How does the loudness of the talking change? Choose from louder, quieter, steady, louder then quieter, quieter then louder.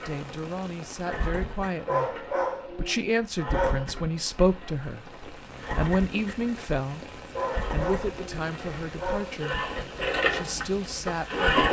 louder then quieter.